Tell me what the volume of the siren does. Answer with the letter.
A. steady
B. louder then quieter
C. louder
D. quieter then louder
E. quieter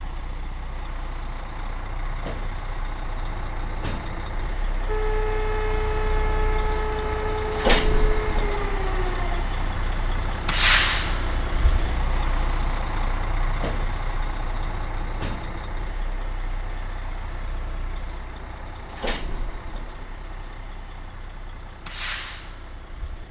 A.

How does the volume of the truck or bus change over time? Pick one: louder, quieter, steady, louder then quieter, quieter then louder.
louder then quieter.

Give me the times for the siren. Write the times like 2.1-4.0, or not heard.
4.8-9.4.